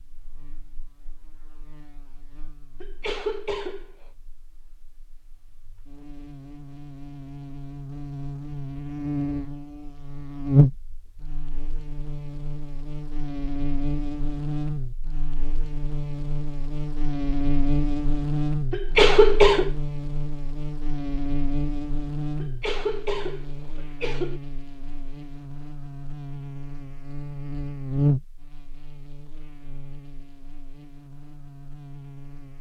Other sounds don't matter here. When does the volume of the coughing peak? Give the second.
19 s.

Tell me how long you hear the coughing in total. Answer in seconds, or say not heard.
4 s.